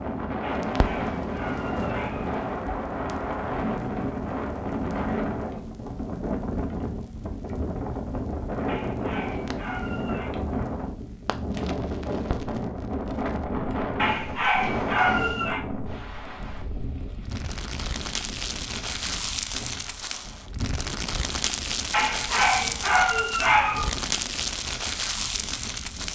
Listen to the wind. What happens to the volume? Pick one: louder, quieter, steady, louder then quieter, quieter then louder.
quieter.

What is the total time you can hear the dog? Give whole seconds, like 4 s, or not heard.
7 s.